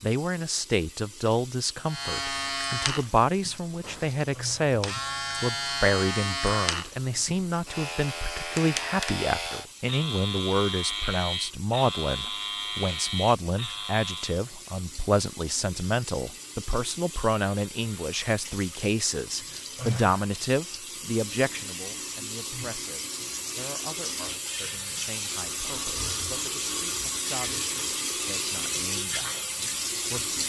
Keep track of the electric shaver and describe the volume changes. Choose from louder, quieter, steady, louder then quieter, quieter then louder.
steady.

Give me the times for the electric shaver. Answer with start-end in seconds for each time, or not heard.
1.9-14.4.